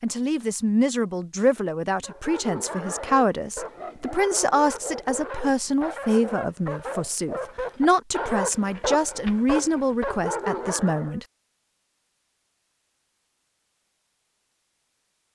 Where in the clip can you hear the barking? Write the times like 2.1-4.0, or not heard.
2.0-11.2.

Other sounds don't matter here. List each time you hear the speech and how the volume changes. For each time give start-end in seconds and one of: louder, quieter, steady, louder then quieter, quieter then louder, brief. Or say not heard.
0.0-11.2 steady.